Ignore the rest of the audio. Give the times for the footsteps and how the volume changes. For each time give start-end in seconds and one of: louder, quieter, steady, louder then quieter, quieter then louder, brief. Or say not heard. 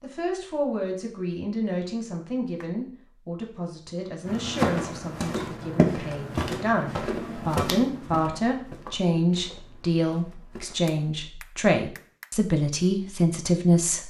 4.2-11.0 quieter.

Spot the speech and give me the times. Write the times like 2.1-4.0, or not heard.
0.0-14.0.